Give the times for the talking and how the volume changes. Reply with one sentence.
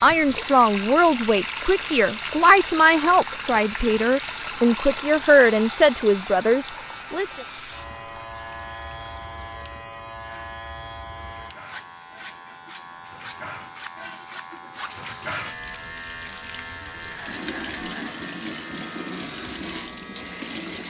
The talking can be heard from 0.0 to 7.5 s, at a steady volume.